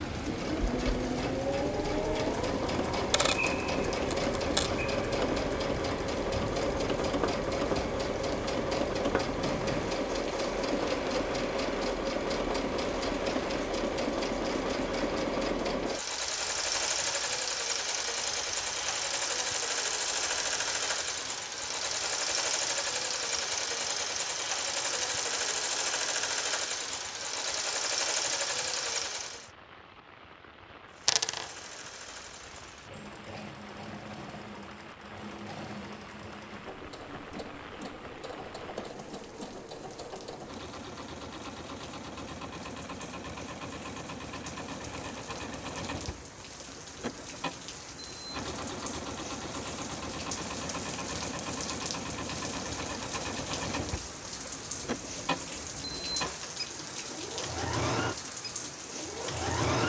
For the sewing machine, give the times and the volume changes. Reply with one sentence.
The sewing machine can be heard from 0.0 to 29.5 s, at a steady volume; and from 30.9 to 59.8 s, getting louder.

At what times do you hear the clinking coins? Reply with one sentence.
The clinking coins can be heard from 2.9 to 4.7 s and from 31.1 to 31.5 s.